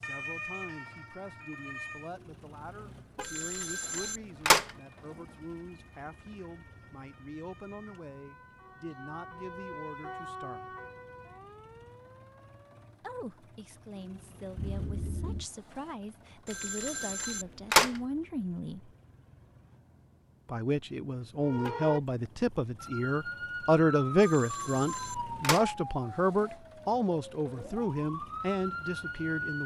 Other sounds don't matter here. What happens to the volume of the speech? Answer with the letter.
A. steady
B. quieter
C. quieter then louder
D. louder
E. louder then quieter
D.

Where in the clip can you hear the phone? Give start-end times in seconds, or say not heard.
3.2-4.7, 16.4-18.0, 24.2-25.7.